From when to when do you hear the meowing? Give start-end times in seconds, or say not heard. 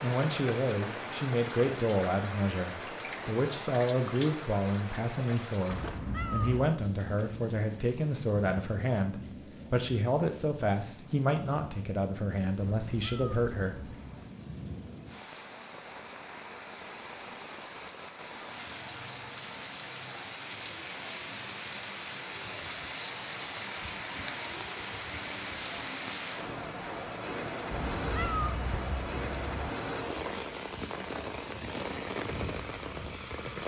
5.7-6.8, 12.7-14.4, 27.7-29.7.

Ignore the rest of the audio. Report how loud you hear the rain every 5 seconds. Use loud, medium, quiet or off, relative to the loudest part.
loud, medium, medium, medium, loud, loud, loud.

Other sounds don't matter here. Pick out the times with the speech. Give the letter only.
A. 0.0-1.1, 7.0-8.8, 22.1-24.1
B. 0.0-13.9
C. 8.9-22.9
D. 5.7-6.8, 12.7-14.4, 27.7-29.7
B.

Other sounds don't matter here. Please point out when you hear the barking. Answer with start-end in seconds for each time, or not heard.
not heard.